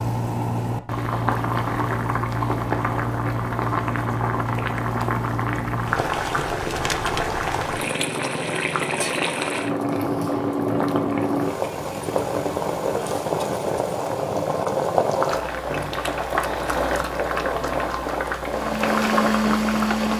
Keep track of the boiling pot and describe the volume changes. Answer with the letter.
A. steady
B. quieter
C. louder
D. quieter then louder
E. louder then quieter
A.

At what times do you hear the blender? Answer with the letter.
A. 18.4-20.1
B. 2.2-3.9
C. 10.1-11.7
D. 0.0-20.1
A.